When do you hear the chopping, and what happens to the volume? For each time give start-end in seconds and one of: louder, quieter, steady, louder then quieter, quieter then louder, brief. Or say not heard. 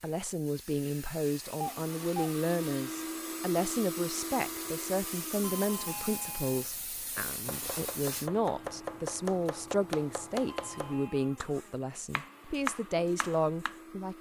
7.2-13.8 quieter then louder.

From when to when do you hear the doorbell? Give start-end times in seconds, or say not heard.
1.6-2.4, 5.4-6.7, 10.5-11.4.